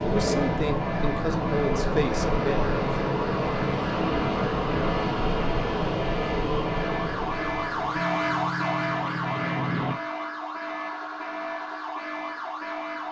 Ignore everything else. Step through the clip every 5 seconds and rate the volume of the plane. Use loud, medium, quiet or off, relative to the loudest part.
loud, loud, off.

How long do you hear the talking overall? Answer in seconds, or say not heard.
3 s.